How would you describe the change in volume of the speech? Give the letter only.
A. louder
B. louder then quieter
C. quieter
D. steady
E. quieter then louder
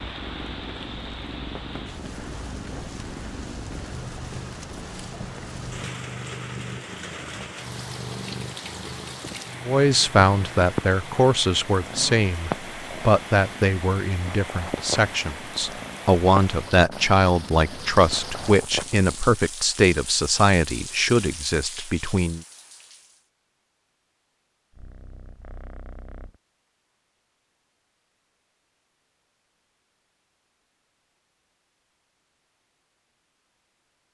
D.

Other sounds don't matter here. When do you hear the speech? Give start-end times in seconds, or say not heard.
9.7-22.4.